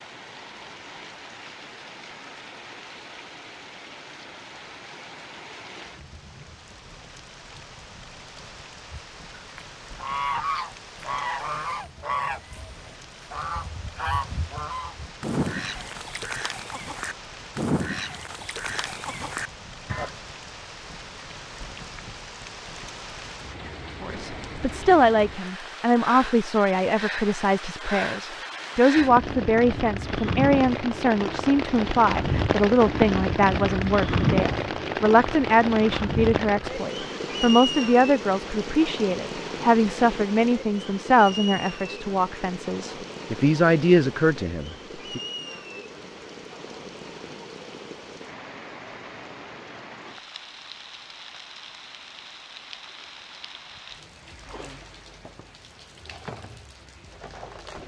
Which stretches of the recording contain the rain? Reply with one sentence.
The rain can be heard from 0.0 to 57.8 s.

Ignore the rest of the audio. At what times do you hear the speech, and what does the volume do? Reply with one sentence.
The speech can be heard from 24.0 to 45.2 s, at a steady volume.